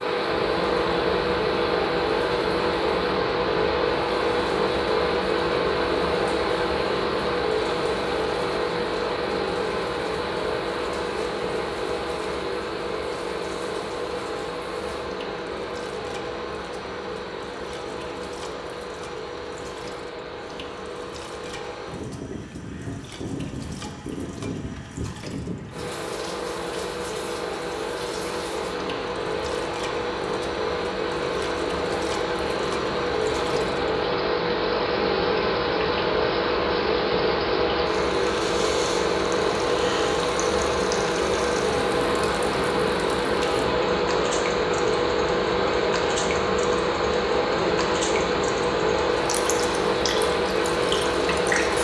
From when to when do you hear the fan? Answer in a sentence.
The fan can be heard from 0.0 to 51.7 s.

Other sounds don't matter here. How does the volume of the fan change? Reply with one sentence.
The volume of the fan goes down, then up.